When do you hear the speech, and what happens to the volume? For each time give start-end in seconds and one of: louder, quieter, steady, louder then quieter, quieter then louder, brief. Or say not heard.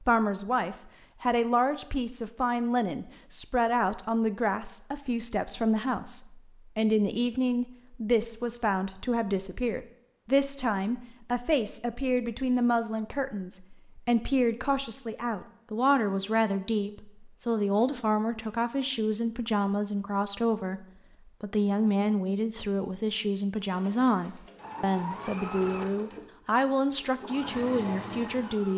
0.0-28.7 steady.